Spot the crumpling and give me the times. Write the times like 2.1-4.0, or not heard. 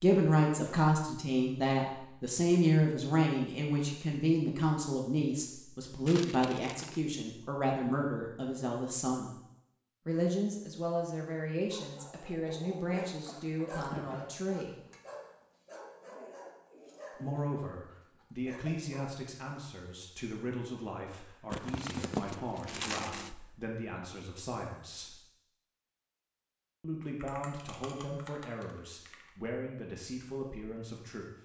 6.0-7.0, 21.5-23.4.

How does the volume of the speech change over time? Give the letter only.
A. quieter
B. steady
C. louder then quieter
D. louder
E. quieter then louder
A.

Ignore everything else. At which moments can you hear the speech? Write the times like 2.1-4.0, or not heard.
0.0-9.3, 10.1-14.8, 17.1-25.2, 26.8-31.3.